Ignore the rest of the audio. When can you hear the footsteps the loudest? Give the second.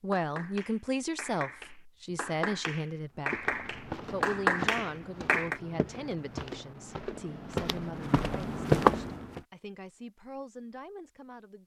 9 s.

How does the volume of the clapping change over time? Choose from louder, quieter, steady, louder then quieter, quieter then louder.
louder.